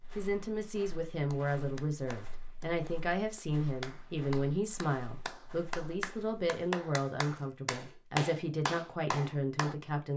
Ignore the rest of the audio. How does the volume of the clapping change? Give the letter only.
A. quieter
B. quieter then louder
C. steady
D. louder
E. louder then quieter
D.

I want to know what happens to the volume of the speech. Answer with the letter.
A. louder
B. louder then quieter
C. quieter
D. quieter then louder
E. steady
E.